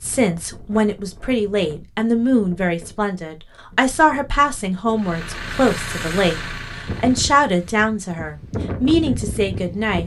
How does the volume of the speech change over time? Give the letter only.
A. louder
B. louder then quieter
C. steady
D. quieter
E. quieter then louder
C.